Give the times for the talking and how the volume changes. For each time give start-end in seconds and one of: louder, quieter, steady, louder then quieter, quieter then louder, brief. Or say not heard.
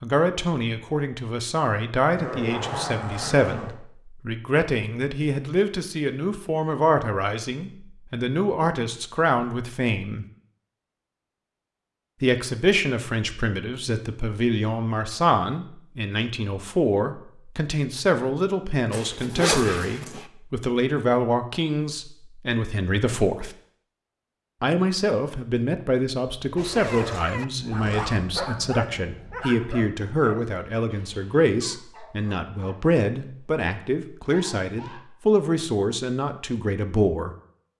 0.0-10.2 steady
12.2-23.5 steady
24.6-37.3 steady.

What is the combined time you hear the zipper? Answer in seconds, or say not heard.
5 s.